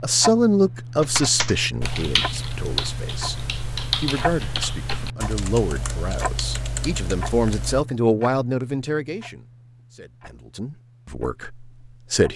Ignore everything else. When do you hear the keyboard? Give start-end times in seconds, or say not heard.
1.0-7.8.